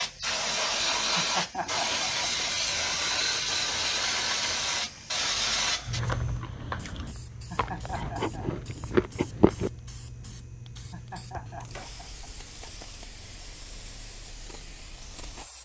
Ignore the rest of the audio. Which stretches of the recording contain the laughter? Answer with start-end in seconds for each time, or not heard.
1.1-2.3, 7.5-8.5, 10.9-12.8.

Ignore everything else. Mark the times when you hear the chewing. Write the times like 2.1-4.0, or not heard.
1.5-9.7.